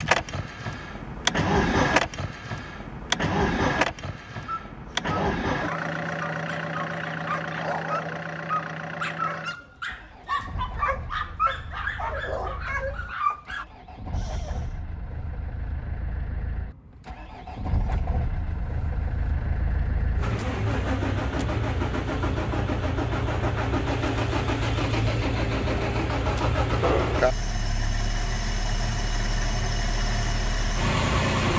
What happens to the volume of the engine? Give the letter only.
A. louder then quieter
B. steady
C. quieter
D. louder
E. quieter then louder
E.